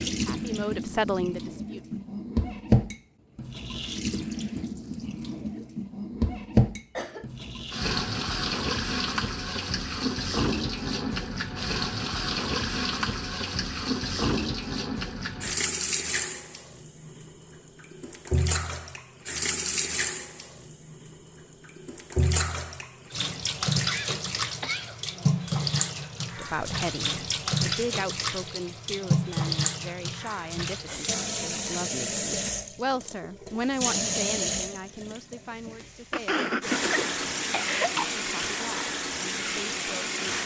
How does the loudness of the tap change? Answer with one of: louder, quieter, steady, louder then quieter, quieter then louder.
steady.